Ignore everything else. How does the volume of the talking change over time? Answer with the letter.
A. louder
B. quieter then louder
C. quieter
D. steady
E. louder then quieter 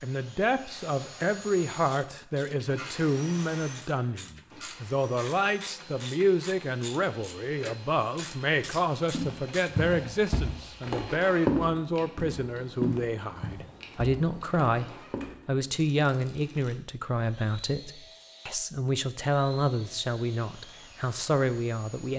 D.